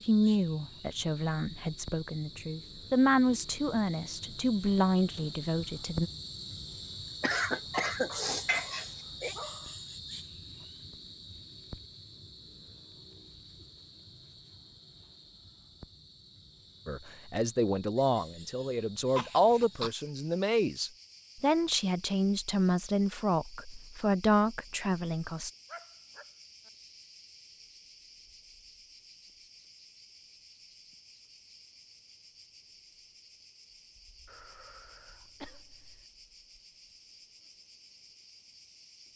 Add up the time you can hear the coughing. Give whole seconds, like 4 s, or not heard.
5 s.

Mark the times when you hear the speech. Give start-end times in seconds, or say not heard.
0.1-6.1, 16.9-25.5.